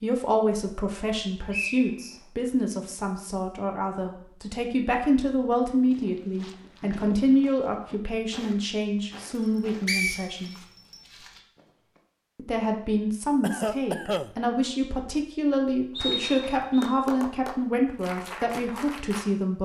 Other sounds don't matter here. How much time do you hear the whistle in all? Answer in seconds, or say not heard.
3 s.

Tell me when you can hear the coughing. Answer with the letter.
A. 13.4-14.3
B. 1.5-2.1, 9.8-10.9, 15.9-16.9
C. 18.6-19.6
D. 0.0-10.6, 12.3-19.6
A.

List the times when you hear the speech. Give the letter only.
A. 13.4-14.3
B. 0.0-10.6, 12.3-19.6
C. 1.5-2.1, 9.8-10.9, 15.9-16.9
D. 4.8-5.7
B.